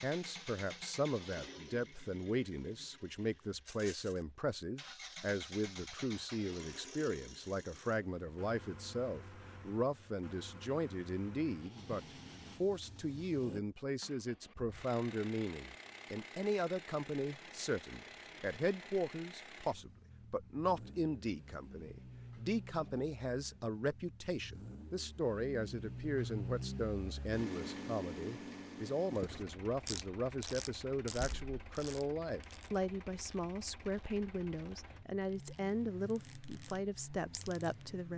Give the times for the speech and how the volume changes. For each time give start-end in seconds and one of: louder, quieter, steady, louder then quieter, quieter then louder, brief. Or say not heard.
0.0-38.1 steady.